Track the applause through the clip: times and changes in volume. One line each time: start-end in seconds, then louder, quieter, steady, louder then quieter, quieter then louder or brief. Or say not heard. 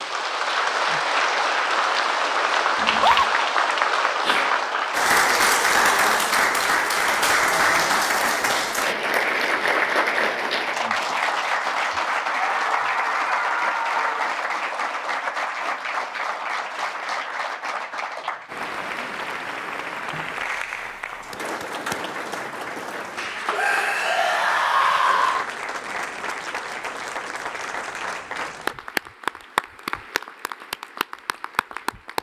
0.0-32.1 quieter.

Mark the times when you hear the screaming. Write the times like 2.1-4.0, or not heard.
2.8-3.3, 12.5-14.3, 23.5-25.4.